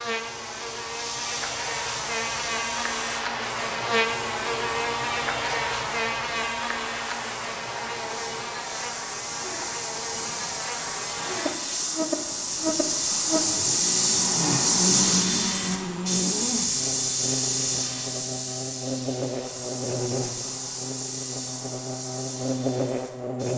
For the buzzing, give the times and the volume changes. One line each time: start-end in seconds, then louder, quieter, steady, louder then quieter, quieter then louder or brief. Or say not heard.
0.0-23.5 steady.